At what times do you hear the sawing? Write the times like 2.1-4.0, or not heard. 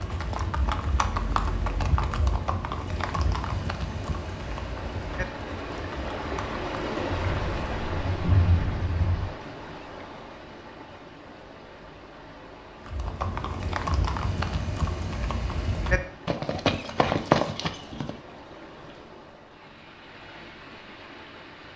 not heard.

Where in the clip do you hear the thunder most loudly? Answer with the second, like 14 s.
8 s.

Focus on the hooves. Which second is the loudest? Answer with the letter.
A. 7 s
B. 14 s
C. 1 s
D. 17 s
D.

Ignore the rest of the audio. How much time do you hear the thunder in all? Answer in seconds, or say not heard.
2 s.